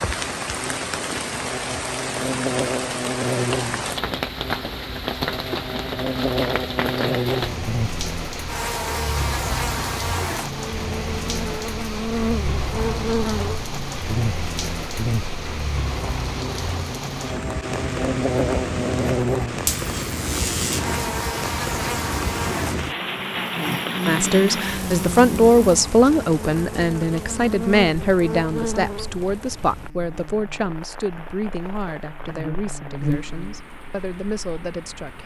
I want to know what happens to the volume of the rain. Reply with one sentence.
The loudness of the rain goes down.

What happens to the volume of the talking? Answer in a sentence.
The volume of the talking goes down.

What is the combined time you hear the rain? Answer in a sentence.
The rain can be heard for 35 seconds in total.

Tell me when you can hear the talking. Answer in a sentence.
The talking can be heard from 24.1 to 35.2 s.